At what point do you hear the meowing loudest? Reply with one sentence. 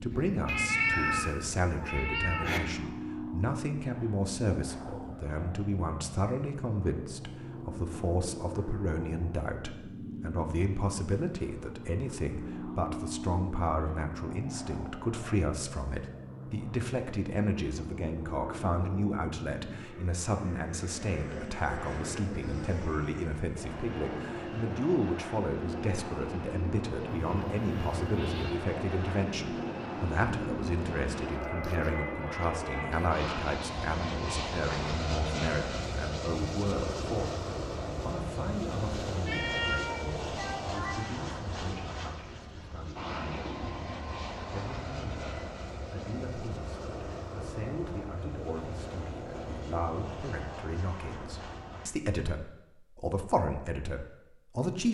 The volume of the meowing peaks at 1 second.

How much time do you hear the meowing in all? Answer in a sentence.
The meowing can be heard for 6 seconds in total.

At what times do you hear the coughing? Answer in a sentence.
You can't hear the coughing here.